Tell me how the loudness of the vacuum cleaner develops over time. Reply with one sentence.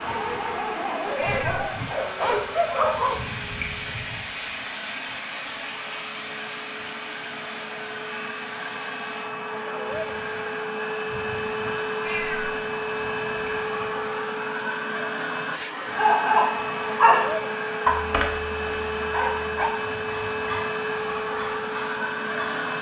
The loudness of the vacuum cleaner goes up.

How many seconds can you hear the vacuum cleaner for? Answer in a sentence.
You can hear the vacuum cleaner for 23 seconds altogether.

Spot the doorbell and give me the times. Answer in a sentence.
You can't hear the doorbell here.